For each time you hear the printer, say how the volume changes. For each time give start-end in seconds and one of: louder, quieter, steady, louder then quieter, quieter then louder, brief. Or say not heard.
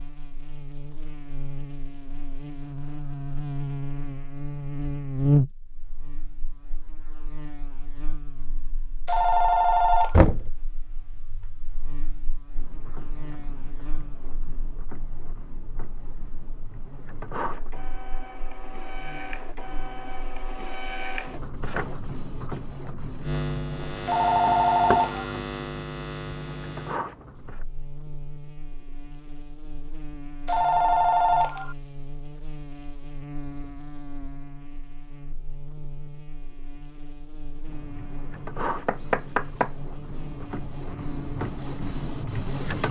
12.6-27.6 louder
37.6-42.8 quieter then louder.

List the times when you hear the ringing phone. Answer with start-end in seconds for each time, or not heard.
9.1-10.2, 24.1-25.4, 30.4-31.8.